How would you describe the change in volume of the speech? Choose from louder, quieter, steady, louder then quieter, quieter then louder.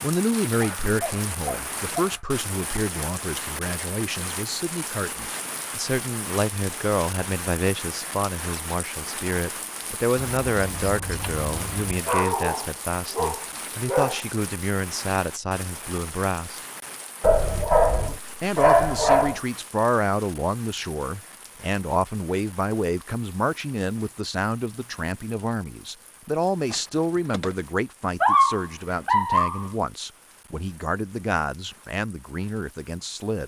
steady.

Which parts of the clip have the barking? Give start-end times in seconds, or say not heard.
0.6-2.2, 12.1-14.2, 17.2-19.4, 28.2-29.7.